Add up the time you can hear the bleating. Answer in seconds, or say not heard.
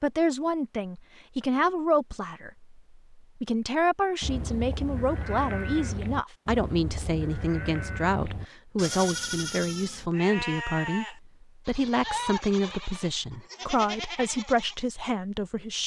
11 s.